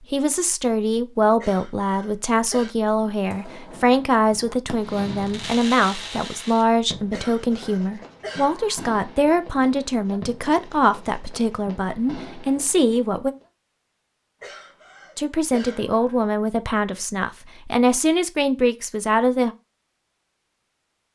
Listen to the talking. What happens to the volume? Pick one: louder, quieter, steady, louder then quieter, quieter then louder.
steady.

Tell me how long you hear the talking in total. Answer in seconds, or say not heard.
18 s.